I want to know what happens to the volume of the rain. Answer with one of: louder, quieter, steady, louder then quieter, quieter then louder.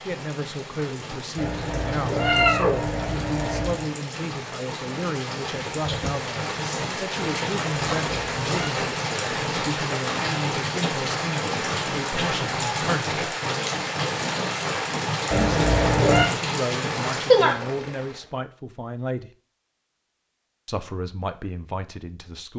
louder.